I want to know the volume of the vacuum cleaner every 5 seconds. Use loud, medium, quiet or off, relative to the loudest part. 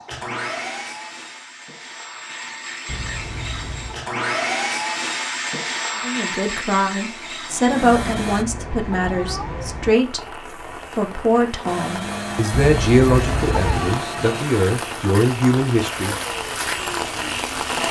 loud, loud, loud, medium.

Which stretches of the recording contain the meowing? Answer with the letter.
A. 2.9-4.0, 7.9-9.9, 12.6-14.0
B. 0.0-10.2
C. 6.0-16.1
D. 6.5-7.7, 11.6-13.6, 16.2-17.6
A.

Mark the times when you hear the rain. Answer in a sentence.
You can hear the rain from 7.5 to 17.8 s.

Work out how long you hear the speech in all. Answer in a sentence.
The speech can be heard for 10 seconds in total.